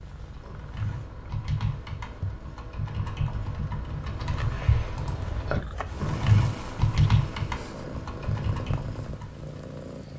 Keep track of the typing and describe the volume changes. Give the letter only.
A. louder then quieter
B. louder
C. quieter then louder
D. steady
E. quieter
A.